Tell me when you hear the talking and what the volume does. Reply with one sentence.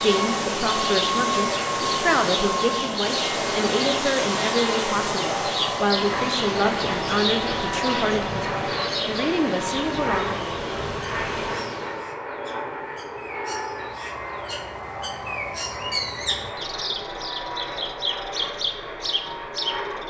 You can hear the talking from 0.0 to 10.5 s, at a steady volume.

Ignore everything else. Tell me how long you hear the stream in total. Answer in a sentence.
The stream can be heard for 12 seconds in total.